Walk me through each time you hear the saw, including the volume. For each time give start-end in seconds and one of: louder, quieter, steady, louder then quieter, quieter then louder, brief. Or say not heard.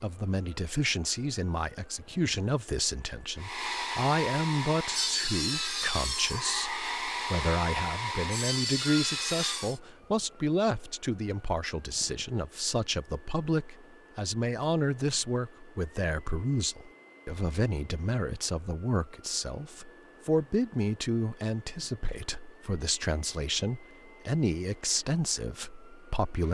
3.4-9.8 steady.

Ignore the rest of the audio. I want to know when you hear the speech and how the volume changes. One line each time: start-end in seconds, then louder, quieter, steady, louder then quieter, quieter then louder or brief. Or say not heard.
0.0-26.4 steady.